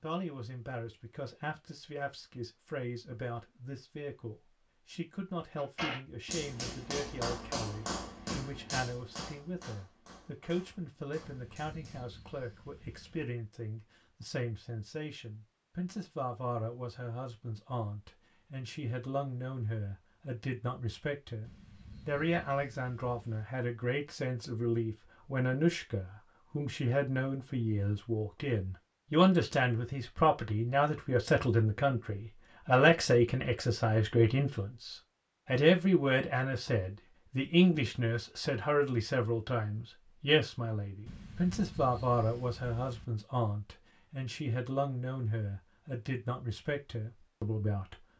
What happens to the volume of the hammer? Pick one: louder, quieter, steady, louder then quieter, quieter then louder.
quieter.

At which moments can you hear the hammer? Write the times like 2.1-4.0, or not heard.
5.5-12.1.